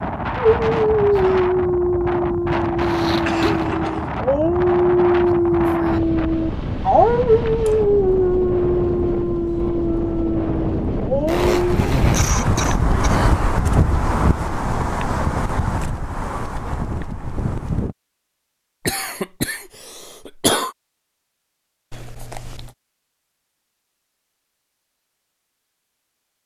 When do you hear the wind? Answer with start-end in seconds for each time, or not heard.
0.0-17.9.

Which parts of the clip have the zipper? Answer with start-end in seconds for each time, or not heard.
2.8-3.6, 11.2-12.2, 21.9-22.8.